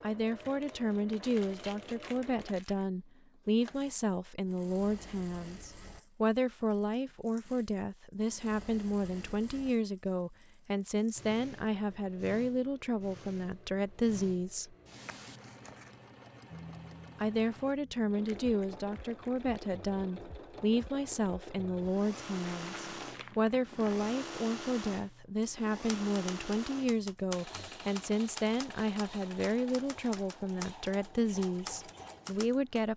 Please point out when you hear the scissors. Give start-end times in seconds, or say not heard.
15.1-16.1.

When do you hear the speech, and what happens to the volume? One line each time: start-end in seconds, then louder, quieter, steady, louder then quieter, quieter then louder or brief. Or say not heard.
0.0-14.8 steady
17.2-32.9 steady.